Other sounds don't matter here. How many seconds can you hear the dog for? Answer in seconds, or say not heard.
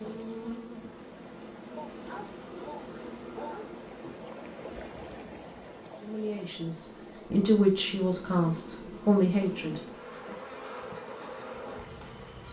2 s.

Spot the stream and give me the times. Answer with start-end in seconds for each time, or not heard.
0.0-7.5.